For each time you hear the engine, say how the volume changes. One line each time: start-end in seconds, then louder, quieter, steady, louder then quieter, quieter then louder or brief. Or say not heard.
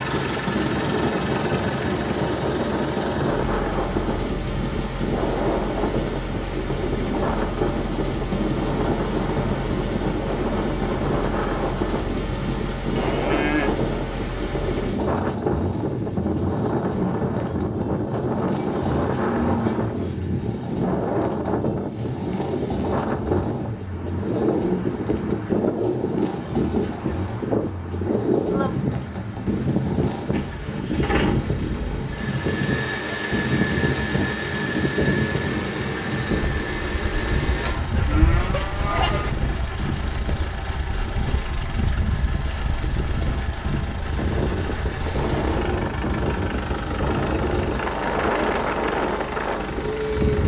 0.0-50.4 steady.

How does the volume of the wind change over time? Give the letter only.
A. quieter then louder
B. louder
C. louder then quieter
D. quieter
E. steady
E.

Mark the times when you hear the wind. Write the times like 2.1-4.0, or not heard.
0.0-50.4.